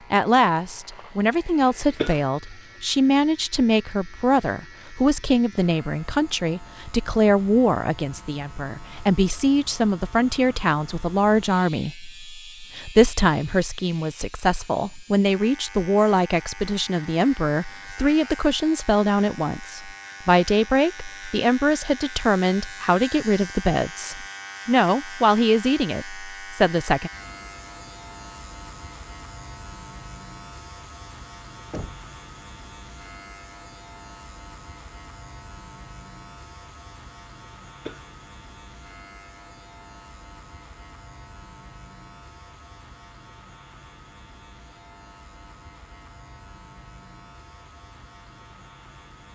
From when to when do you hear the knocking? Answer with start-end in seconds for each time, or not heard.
31.7-32.1.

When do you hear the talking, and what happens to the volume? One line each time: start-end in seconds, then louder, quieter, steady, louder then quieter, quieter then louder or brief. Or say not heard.
0.1-27.1 steady.